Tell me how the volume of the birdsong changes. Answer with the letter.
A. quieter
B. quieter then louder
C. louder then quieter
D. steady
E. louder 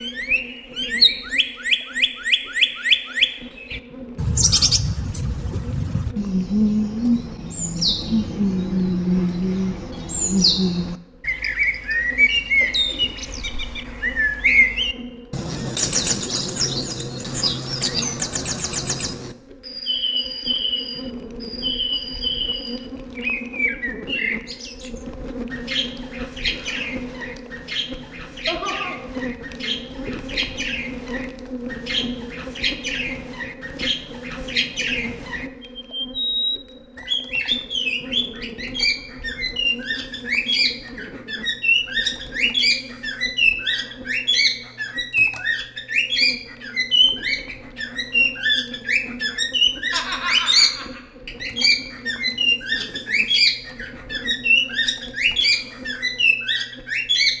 B.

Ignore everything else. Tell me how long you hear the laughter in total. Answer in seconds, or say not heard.
3 s.